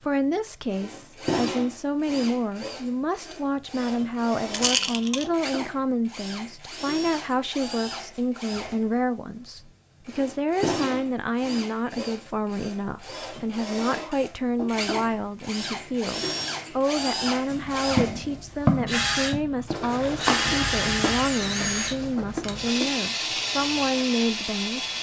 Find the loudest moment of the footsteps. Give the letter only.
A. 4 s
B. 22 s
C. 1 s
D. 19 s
D.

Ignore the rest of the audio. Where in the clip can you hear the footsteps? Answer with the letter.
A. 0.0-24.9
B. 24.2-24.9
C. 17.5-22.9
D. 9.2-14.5
C.